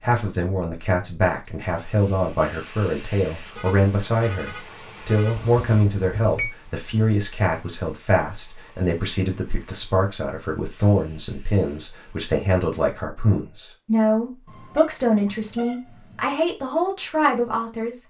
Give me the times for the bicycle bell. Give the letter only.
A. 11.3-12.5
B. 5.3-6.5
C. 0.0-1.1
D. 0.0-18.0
B.